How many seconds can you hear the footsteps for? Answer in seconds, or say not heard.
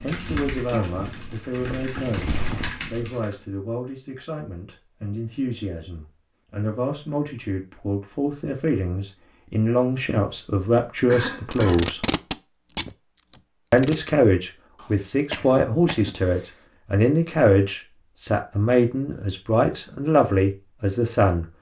3 s.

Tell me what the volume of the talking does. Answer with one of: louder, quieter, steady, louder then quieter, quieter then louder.
louder.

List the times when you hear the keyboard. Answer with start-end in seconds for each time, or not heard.
0.0-3.5.